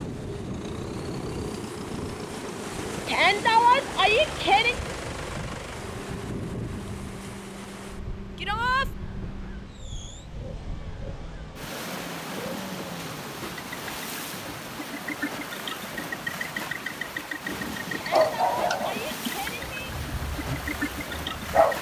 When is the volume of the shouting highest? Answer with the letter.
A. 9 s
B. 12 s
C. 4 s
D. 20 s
C.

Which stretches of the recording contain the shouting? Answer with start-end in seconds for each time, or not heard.
3.0-4.8, 8.3-8.9, 17.9-19.9.